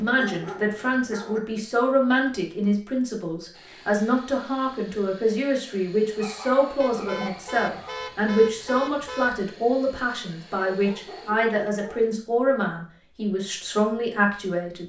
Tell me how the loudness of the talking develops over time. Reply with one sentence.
The volume of the talking stays about the same.